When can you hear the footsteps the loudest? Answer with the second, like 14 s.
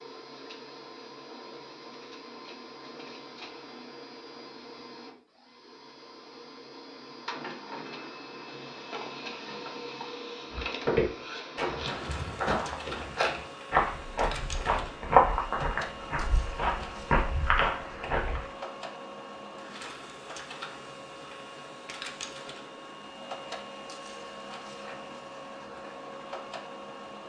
15 s.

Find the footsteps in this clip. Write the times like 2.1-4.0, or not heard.
10.5-18.4.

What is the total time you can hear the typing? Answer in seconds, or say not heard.
not heard.